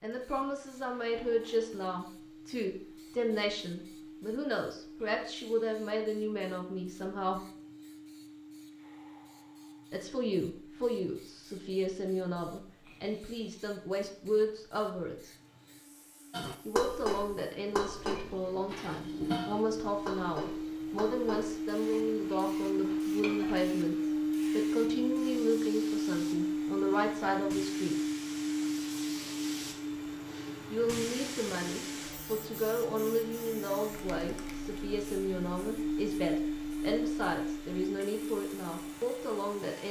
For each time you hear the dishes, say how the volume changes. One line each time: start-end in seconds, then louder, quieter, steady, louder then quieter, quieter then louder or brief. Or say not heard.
16.3-23.6 quieter.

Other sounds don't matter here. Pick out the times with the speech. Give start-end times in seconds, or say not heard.
0.0-7.4, 9.9-15.3, 16.6-27.9, 30.7-39.8.